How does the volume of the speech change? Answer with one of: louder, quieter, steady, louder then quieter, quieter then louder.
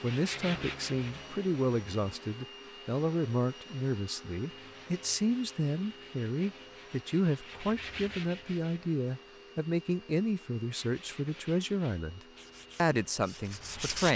steady.